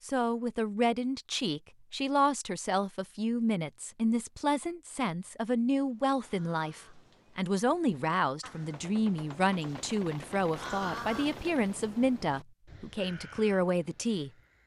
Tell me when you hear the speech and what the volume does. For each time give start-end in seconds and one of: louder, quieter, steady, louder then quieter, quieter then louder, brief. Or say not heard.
0.0-14.6 steady.